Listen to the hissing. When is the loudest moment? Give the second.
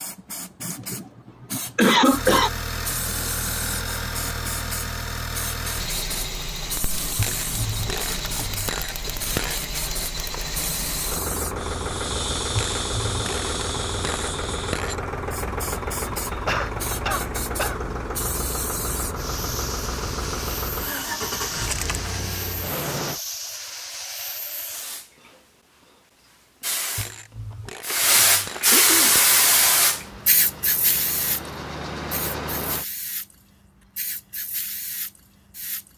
29 s.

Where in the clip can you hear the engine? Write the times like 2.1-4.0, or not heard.
2.1-23.2, 29.1-32.9.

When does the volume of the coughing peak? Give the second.
2 s.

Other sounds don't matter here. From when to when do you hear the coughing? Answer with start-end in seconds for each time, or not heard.
0.6-2.5, 16.3-17.8, 27.5-29.2.